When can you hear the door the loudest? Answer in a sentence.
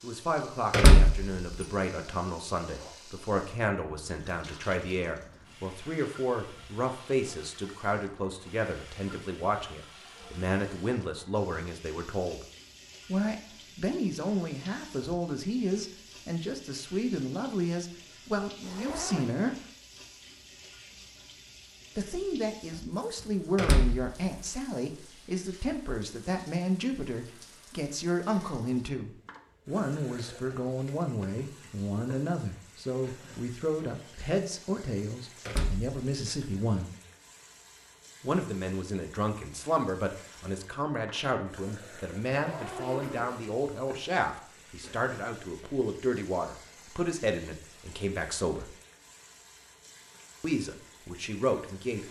The volume of the door peaks at 1 second.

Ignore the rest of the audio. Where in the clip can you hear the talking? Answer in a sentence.
The talking can be heard from 0.0 to 12.4 s, from 13.1 to 19.6 s, from 21.9 to 37.0 s, from 38.2 to 48.8 s and from 50.4 to 52.0 s.